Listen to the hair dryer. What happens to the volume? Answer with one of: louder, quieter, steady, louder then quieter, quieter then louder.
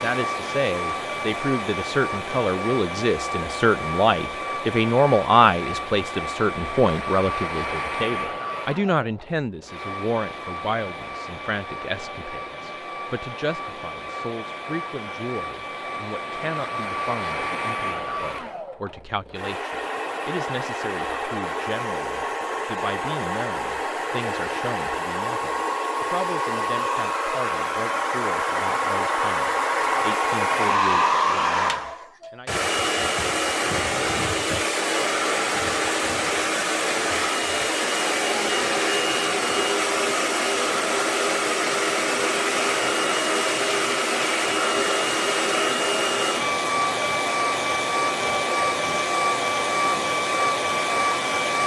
louder.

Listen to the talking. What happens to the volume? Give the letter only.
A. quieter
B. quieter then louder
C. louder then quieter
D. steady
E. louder
A.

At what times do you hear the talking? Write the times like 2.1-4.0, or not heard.
0.0-32.5.